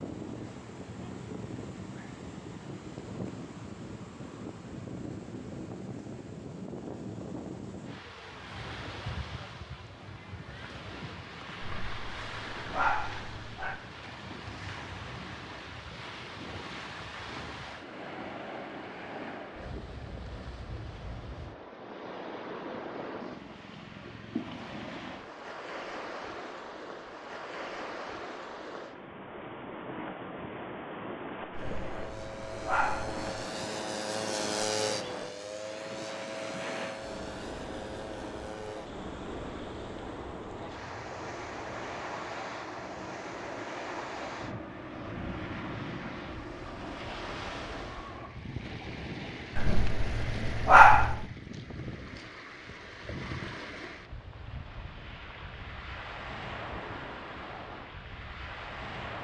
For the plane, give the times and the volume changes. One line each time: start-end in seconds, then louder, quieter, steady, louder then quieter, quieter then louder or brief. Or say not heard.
31.6-48.3 quieter.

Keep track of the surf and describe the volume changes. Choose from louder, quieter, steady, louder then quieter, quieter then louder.
steady.